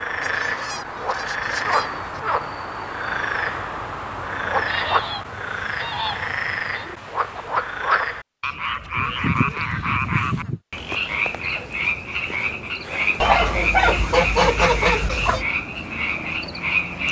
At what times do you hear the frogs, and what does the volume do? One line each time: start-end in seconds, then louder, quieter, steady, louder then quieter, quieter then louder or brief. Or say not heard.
0.0-17.0 steady.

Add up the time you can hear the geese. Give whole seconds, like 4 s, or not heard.
8 s.